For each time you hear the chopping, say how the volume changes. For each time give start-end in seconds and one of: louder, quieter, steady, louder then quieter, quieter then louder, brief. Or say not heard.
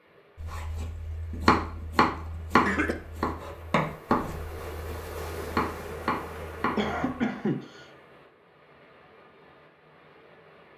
0.4-7.0 quieter then louder.